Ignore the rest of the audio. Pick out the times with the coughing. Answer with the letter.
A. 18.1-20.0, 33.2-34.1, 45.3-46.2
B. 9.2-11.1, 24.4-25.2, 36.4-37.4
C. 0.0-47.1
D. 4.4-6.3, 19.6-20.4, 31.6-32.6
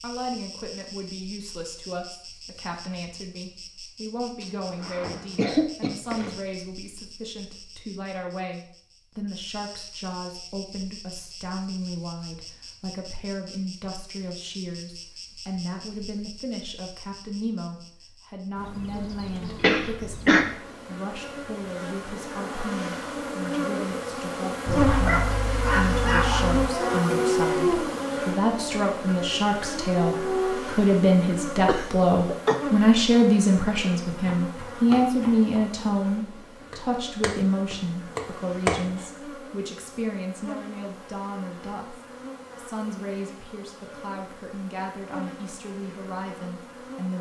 D.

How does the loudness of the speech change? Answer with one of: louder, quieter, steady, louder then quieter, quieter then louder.
louder then quieter.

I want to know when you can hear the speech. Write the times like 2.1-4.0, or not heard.
0.0-47.1.